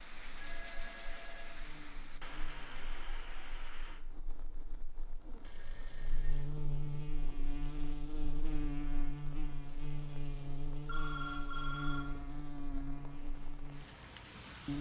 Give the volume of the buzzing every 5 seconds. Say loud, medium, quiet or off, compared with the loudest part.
quiet, loud, loud.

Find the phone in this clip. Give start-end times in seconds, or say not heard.
0.4-1.6, 5.3-6.5, 10.8-12.1.